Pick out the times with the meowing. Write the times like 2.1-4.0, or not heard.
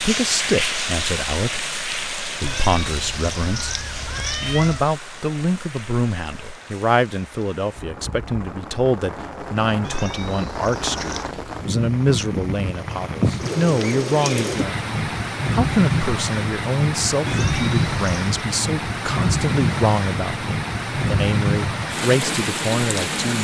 2.4-4.8, 9.8-11.3, 17.2-18.2.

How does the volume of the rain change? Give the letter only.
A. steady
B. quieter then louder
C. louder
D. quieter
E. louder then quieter
B.